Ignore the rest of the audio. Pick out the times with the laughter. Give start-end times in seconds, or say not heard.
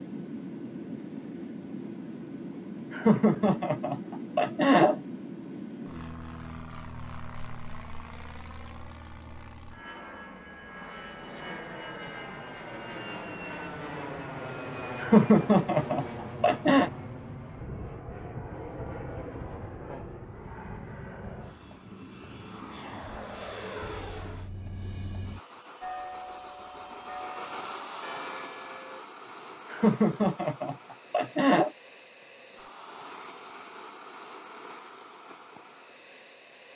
2.9-5.0, 14.6-16.9, 29.7-31.7.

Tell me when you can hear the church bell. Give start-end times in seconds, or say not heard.
25.8-29.0.